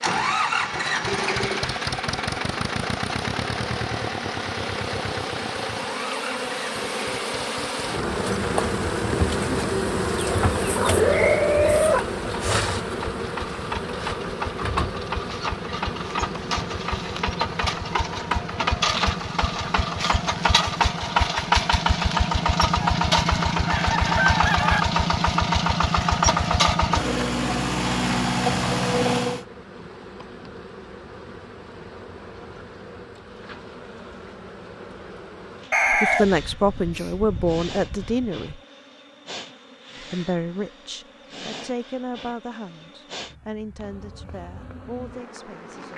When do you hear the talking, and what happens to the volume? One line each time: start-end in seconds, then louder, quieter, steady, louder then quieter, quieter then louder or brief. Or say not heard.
35.9-38.6 brief
40.0-45.9 quieter.